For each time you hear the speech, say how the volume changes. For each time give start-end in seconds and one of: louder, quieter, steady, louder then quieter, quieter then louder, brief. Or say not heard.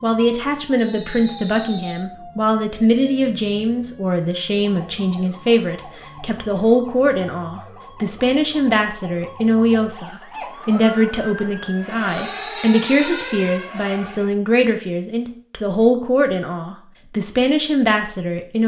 0.0-18.6 steady.